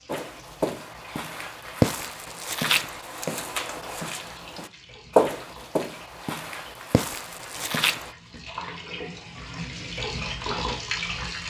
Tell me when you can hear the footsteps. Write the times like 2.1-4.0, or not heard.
0.1-8.2.